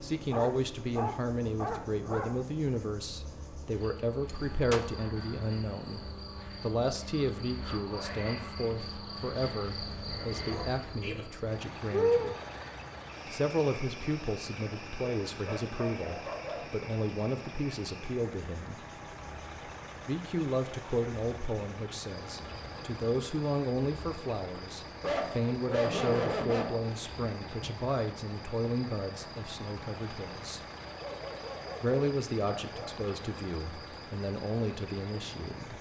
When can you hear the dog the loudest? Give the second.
26 s.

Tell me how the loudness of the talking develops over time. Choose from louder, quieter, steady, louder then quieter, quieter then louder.
steady.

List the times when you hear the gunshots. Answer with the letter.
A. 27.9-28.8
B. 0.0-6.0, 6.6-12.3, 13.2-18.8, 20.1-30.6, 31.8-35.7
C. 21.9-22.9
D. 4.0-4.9
D.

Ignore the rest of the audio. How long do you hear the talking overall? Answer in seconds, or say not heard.
32 s.